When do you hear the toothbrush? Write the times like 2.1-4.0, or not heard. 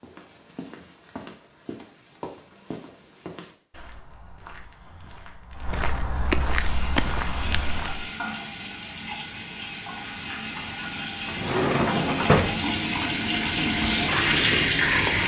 not heard.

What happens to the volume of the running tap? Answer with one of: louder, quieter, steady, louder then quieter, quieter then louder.
louder.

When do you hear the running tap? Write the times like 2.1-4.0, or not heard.
6.5-15.2.